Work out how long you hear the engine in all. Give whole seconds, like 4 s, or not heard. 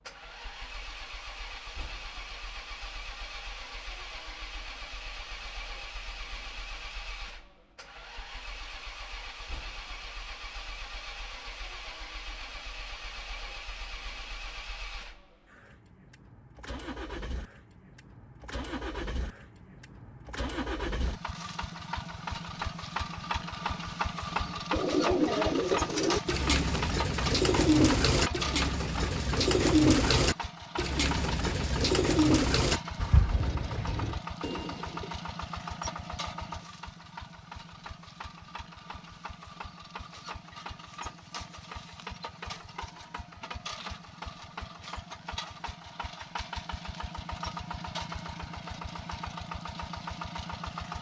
51 s.